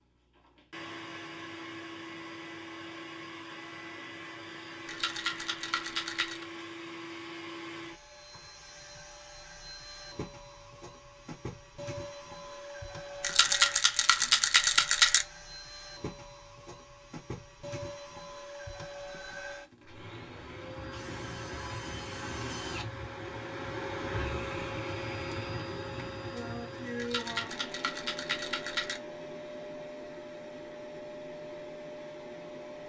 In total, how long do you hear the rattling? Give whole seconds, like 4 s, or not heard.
6 s.